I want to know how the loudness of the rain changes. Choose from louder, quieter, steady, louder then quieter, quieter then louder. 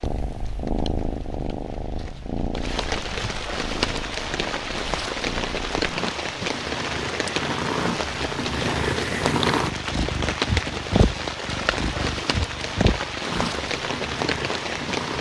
louder.